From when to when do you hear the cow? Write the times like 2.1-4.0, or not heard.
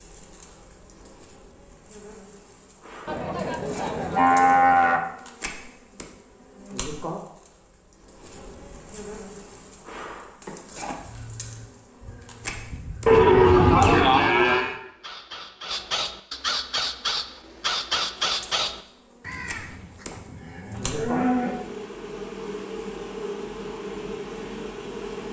3.0-5.0, 13.1-14.8, 20.1-21.6.